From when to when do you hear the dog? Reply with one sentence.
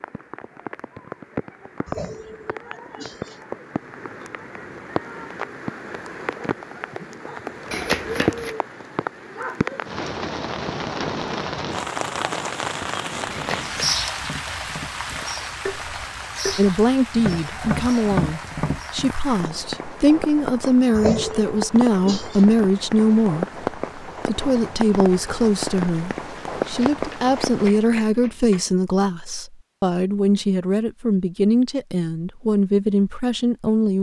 The dog can't be heard in this clip.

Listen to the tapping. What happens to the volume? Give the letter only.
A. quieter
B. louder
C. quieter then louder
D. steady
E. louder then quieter
B.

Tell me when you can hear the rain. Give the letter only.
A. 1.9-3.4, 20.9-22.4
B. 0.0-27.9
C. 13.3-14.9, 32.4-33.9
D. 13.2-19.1
B.